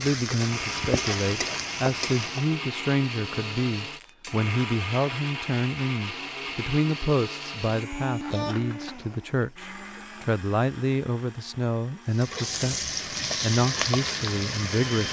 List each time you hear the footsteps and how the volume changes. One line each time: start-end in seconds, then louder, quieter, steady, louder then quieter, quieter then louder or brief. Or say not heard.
not heard.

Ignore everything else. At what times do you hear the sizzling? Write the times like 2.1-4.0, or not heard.
0.0-2.6, 12.1-15.0.